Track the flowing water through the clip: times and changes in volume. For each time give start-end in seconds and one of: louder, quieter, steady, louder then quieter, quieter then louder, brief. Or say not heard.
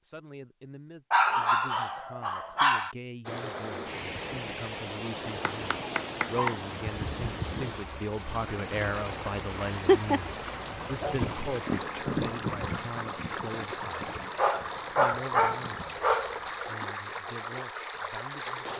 3.2-18.7 steady.